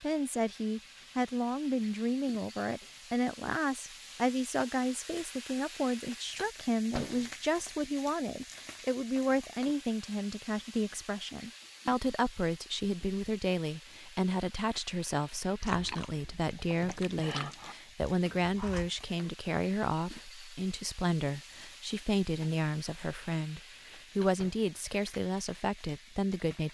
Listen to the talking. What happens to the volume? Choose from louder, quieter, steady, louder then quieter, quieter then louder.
steady.